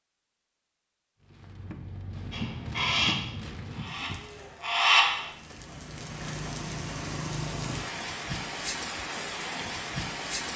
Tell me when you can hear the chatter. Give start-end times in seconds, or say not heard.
not heard.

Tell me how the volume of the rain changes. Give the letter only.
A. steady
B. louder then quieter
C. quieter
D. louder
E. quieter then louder
E.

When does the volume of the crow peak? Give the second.
5 s.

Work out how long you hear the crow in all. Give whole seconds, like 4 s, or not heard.
3 s.